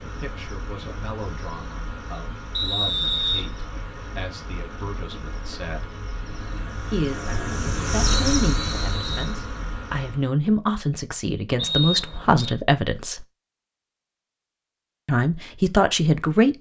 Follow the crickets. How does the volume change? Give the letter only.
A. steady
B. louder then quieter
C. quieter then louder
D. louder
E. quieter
D.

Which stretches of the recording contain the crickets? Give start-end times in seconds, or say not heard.
0.0-10.3.